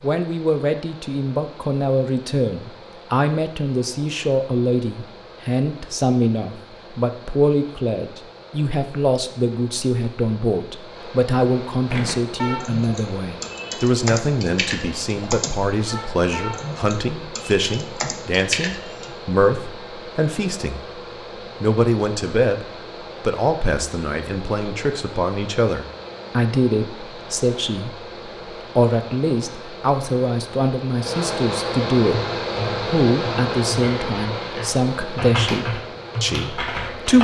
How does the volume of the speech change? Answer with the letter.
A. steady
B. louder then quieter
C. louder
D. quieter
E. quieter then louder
A.